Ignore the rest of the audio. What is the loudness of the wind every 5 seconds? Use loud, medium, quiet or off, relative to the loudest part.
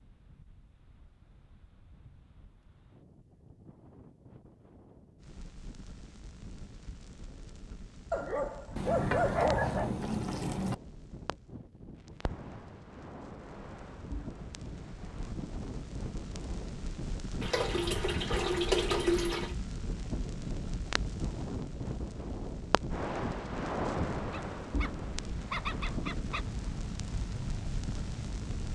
quiet, quiet, medium, loud, loud, loud.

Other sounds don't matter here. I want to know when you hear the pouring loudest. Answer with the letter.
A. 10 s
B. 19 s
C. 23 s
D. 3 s
B.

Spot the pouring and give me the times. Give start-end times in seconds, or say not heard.
8.8-10.8, 17.4-19.6.